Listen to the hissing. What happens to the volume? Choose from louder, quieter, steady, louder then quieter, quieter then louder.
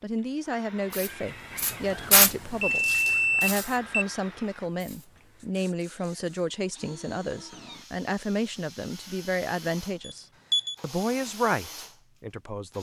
quieter.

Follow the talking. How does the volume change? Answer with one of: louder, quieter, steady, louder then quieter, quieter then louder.
steady.